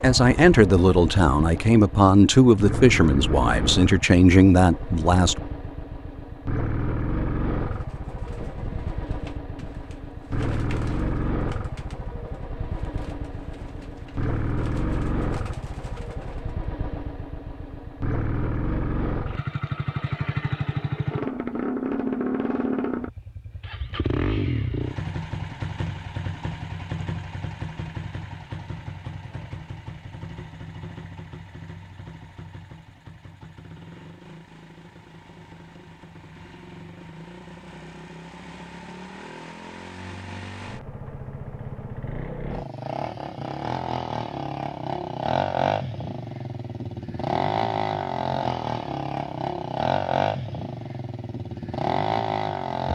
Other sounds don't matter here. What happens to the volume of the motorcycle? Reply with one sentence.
The loudness of the motorcycle goes down, then up.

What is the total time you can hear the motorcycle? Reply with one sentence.
You can hear the motorcycle for 53 seconds altogether.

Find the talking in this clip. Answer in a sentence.
The talking can be heard from 0.0 to 5.3 s.